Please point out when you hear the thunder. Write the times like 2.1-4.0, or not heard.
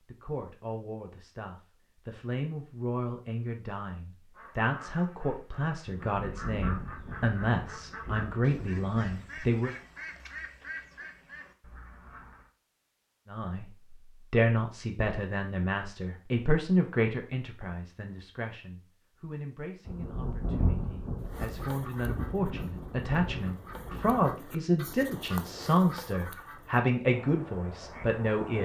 5.9-9.2, 19.9-24.3.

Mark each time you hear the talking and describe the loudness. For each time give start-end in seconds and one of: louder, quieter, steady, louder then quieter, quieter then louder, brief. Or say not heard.
0.1-9.7 louder
13.2-28.6 quieter then louder.